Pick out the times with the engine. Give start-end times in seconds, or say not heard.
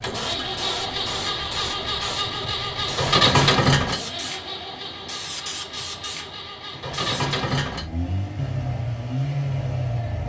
0.0-10.2.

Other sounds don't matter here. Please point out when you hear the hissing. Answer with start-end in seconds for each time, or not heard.
0.0-7.4.